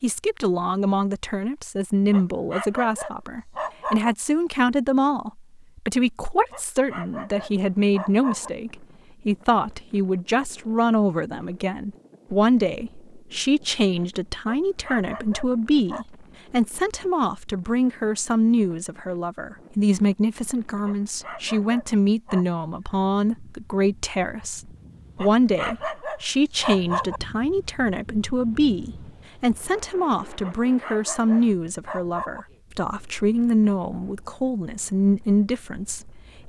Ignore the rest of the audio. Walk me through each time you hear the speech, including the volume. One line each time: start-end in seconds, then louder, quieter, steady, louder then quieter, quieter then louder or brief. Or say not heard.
0.0-36.4 steady.